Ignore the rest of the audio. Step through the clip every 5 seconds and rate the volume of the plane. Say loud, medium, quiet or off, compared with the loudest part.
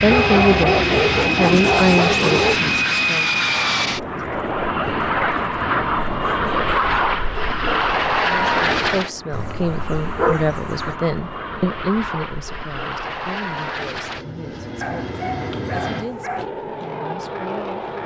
loud, loud, medium, medium.